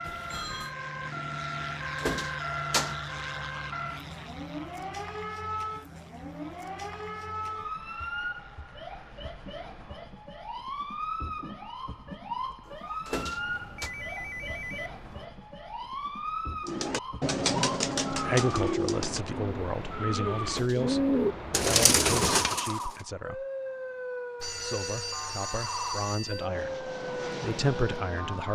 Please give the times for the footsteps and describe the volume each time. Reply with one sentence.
The footsteps can't be heard in this clip.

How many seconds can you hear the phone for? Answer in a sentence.
You can hear the phone for 5 seconds altogether.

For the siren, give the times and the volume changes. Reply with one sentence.
You can hear the siren from 0.0 to 28.5 s, at a steady volume.